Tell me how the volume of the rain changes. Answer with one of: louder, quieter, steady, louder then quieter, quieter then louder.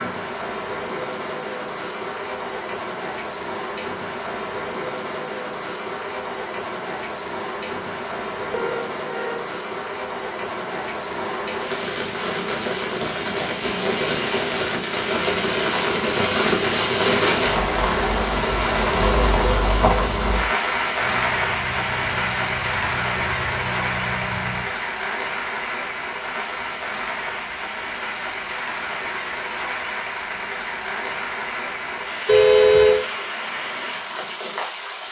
louder then quieter.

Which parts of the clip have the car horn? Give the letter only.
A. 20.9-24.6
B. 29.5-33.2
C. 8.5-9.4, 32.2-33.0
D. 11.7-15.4
C.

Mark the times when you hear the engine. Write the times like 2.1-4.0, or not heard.
20.9-24.6.